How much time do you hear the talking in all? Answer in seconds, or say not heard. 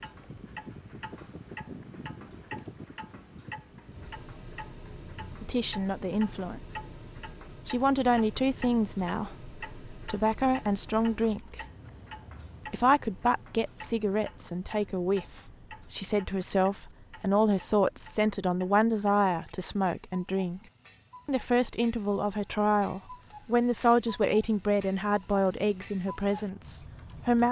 19 s.